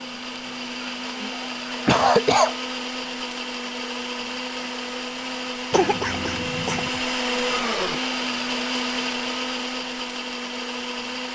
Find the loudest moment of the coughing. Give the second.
2 s.